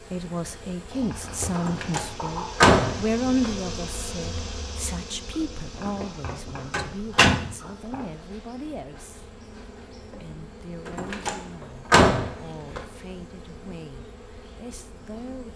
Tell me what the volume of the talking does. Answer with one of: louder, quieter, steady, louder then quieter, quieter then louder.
quieter.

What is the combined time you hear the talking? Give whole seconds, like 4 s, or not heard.
15 s.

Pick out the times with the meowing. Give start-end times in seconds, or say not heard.
not heard.